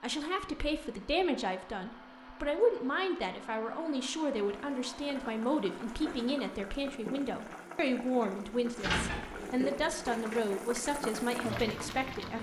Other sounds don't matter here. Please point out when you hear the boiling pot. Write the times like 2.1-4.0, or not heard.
4.3-12.3.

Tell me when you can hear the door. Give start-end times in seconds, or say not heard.
8.8-9.8.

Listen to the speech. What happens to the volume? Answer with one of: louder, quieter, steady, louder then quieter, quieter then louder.
steady.